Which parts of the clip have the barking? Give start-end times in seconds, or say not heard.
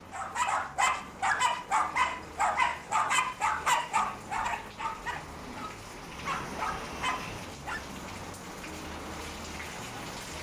0.1-7.8.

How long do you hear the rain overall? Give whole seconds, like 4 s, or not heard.
10 s.